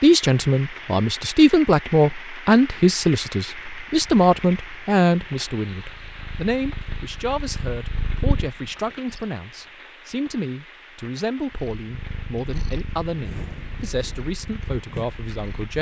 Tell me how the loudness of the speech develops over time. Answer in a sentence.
The volume of the speech goes down.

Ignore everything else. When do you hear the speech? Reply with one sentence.
The speech can be heard from 0.0 to 15.7 s.